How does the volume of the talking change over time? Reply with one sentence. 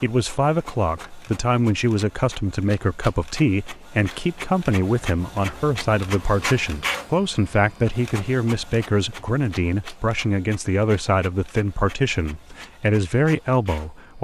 The loudness of the talking stays about the same.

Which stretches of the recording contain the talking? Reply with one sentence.
The talking can be heard from 0.0 to 14.1 s.